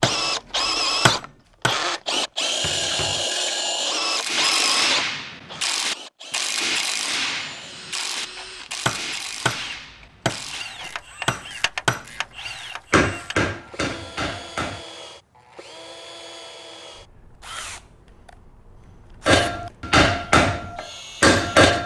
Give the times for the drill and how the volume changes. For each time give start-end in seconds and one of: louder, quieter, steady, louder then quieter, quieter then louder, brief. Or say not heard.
0.0-21.7 quieter.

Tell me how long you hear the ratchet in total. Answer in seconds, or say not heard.
9 s.